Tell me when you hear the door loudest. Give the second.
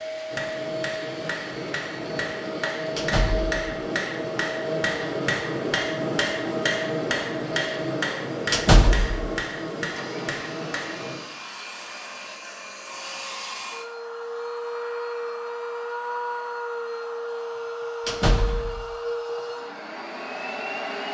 9 s.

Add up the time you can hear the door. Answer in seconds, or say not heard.
2 s.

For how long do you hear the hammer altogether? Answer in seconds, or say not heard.
11 s.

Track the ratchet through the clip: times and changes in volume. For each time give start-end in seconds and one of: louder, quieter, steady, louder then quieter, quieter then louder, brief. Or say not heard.
not heard.